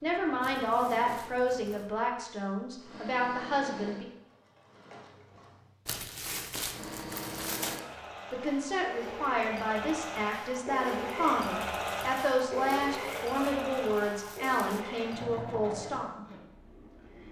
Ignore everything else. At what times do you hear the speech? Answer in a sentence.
The speech can be heard from 0.0 to 4.0 s and from 8.3 to 16.1 s.